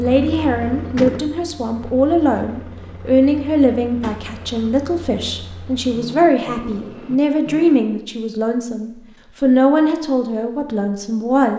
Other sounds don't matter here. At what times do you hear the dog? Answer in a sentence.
The dog can't be heard in this clip.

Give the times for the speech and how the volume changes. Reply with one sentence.
You can hear the speech from 0.0 to 11.5 s, at a steady volume.